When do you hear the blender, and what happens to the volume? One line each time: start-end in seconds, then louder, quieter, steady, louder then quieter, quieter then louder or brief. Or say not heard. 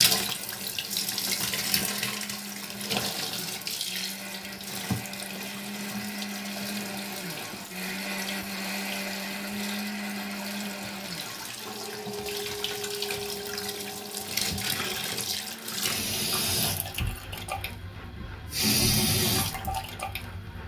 0.2-20.6 louder then quieter.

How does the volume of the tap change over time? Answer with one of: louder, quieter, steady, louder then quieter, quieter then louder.
quieter then louder.